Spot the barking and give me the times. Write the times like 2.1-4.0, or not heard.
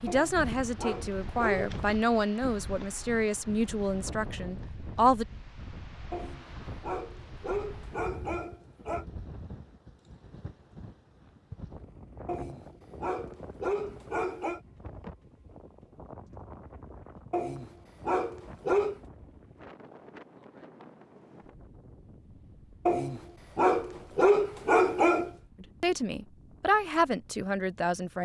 0.1-1.8, 6.1-9.1, 12.2-14.6, 17.3-18.9, 22.9-25.3.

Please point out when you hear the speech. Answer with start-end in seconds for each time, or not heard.
0.0-5.2, 25.6-28.2.